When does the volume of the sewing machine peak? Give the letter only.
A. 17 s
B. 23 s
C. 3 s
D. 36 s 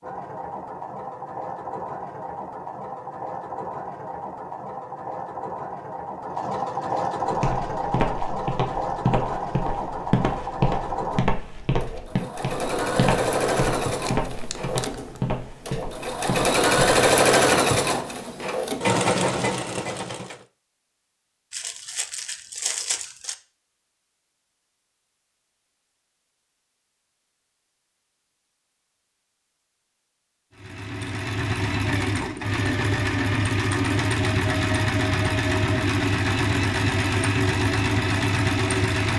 A.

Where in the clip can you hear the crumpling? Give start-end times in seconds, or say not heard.
14.1-15.2, 21.5-23.4.